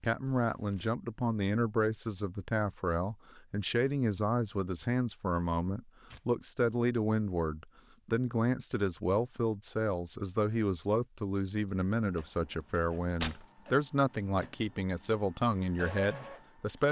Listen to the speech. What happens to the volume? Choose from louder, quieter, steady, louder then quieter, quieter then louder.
steady.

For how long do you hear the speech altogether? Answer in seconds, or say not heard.
17 s.